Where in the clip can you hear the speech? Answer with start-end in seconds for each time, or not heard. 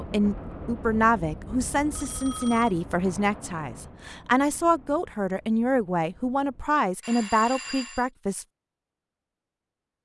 0.0-8.4.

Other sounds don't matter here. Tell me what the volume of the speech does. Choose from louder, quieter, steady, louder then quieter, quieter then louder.
steady.